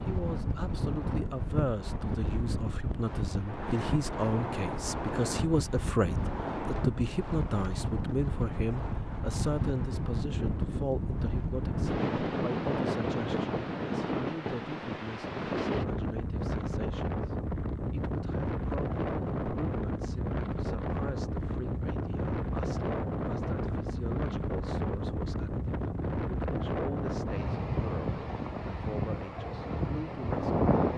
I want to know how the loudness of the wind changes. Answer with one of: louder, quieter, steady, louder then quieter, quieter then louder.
steady.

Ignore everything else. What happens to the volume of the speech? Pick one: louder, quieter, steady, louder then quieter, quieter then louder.
quieter.